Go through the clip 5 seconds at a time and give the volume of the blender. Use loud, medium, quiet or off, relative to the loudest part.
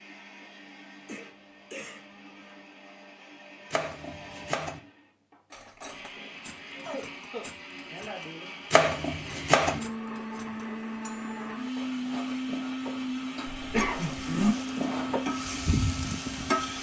quiet, medium, loud, loud.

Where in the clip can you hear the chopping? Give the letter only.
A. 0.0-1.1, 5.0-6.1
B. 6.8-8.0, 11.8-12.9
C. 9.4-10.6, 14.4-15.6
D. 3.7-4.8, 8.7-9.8
D.